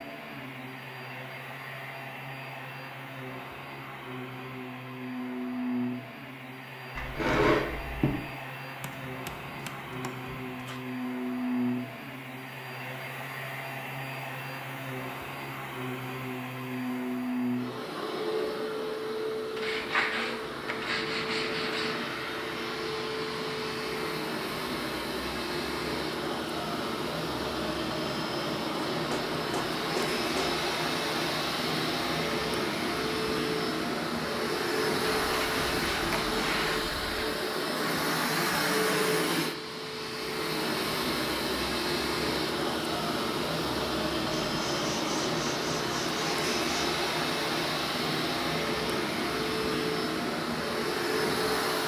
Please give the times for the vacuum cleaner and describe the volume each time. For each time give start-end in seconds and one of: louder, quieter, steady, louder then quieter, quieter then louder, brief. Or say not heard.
0.0-51.8 louder.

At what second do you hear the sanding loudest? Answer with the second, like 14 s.
7 s.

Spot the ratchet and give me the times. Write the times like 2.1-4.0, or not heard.
not heard.